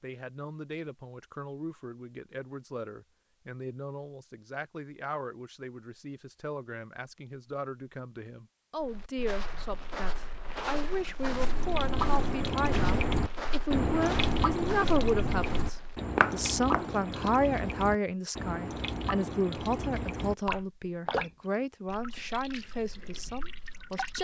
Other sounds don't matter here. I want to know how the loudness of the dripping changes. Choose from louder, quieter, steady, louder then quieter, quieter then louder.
quieter.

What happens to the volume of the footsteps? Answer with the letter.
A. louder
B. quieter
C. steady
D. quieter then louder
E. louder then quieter
A.